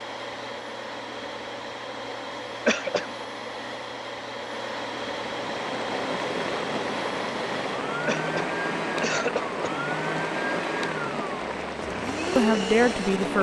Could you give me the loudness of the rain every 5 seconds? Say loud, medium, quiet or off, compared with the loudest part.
off, loud, loud.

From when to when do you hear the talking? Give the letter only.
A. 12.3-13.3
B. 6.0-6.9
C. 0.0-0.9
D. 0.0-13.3
A.